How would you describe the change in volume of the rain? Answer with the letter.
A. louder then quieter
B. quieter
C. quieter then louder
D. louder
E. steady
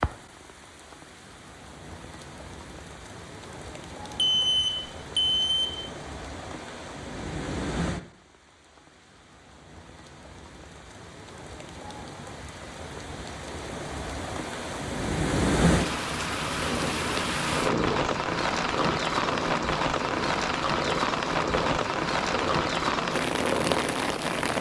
D.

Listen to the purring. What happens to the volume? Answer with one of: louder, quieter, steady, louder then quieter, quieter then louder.
steady.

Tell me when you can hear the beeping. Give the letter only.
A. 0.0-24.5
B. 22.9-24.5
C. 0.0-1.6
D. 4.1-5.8
D.